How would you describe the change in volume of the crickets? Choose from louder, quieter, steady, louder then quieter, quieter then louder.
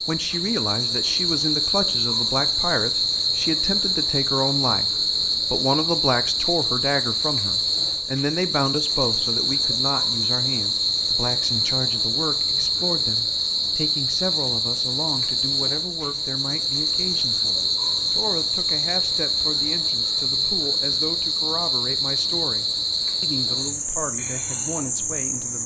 steady.